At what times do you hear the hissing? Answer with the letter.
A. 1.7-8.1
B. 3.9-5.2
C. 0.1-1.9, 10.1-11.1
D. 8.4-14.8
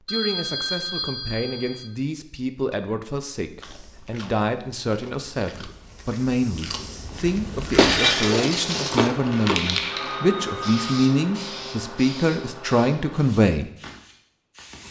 D.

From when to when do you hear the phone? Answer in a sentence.
You can hear the phone from 0.1 to 1.9 s and from 10.1 to 11.1 s.